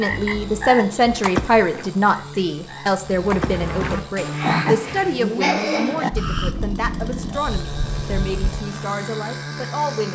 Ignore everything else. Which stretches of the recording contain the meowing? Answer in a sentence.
You can't hear the meowing here.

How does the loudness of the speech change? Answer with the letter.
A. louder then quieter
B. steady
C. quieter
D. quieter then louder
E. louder
C.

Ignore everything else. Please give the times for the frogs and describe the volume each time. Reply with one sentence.
You can hear the frogs from 0.0 to 6.5 s, getting quieter then louder.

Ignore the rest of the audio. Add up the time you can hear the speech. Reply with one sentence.
You can hear the speech for 10 seconds altogether.